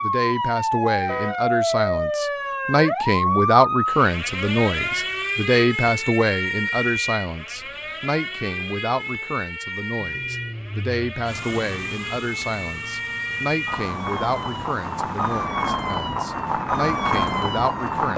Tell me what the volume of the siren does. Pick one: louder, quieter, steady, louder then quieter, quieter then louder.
quieter then louder.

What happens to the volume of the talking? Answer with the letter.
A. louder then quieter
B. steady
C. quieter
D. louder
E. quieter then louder
C.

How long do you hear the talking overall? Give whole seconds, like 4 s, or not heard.
18 s.